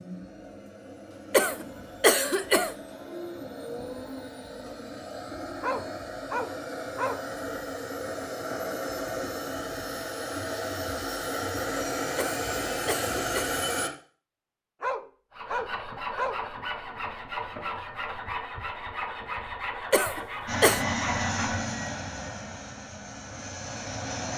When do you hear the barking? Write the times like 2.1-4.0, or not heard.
5.6-7.2, 14.8-16.4.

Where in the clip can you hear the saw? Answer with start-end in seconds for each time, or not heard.
15.3-21.8.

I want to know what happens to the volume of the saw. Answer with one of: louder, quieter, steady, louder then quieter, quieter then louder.
steady.